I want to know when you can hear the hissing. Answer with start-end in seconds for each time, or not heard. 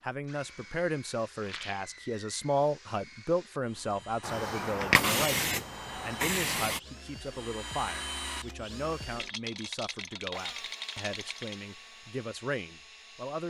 4.2-6.8.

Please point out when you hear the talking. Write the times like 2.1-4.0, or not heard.
0.0-13.4.